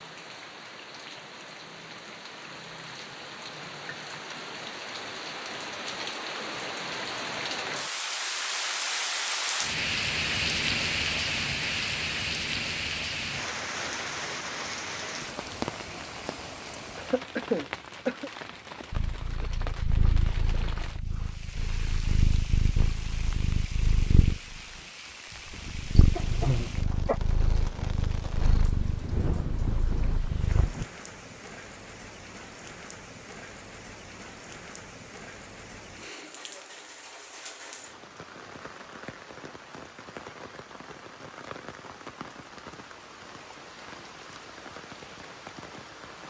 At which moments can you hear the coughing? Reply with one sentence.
You can hear the coughing from 16.9 to 18.3 s and from 26.1 to 27.2 s.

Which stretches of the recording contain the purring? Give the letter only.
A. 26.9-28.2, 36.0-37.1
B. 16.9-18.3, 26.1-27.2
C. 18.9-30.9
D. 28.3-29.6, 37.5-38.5
C.